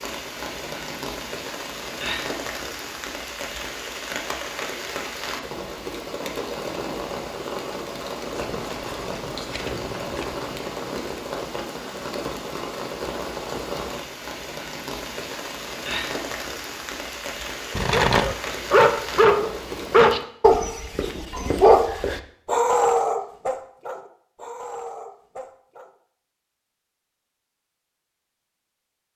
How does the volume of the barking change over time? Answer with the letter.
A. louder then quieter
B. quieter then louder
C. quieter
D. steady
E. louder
C.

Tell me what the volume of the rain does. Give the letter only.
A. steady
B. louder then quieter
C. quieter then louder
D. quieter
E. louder
A.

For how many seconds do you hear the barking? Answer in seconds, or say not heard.
8 s.